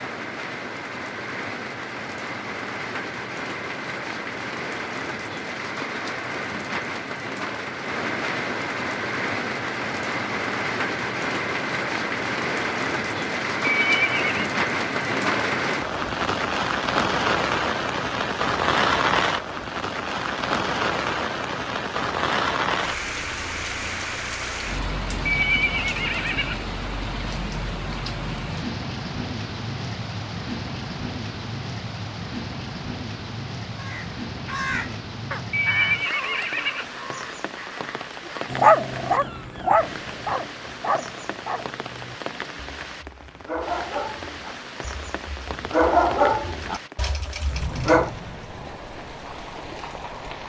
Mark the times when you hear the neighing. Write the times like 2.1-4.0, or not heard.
13.6-14.4, 25.2-26.6, 35.5-36.9.